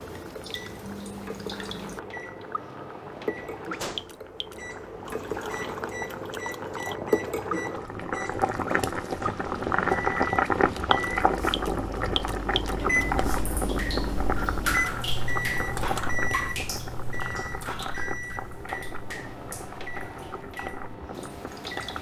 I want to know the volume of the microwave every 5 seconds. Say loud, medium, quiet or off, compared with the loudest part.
medium, medium, loud, loud, medium.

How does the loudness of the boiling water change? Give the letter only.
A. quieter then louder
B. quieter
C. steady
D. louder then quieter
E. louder
D.